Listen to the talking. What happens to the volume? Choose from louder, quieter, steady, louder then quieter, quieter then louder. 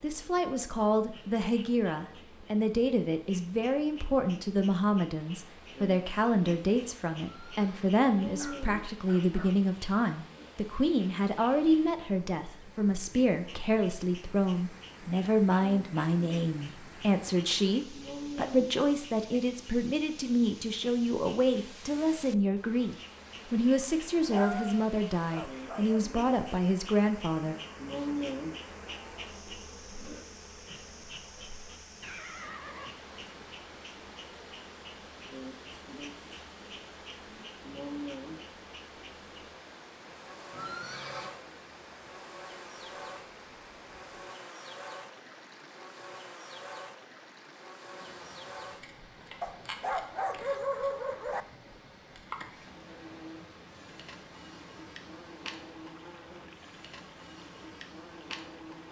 steady.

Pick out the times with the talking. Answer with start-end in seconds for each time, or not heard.
0.0-27.6.